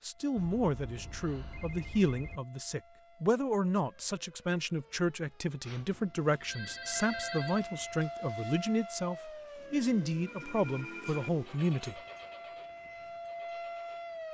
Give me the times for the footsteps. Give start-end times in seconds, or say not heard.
not heard.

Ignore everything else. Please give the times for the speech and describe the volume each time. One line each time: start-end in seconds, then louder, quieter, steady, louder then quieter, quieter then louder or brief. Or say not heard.
0.0-12.0 steady.